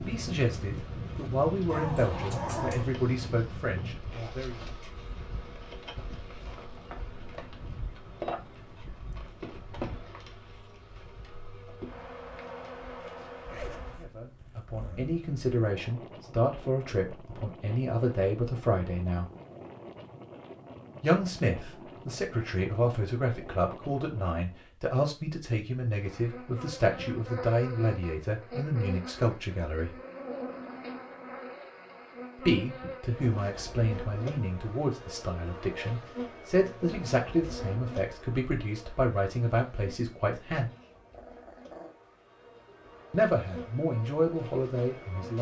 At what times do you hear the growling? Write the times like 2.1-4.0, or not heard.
1.6-2.9, 40.6-42.0.